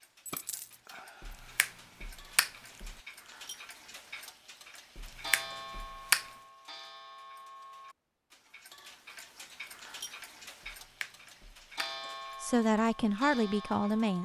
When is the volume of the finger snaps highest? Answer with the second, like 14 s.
6 s.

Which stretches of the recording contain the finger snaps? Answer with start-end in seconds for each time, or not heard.
1.2-3.0, 5.0-6.2, 10.7-11.9.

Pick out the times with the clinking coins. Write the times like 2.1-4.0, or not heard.
0.2-0.8.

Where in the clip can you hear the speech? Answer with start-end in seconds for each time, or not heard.
12.4-14.2.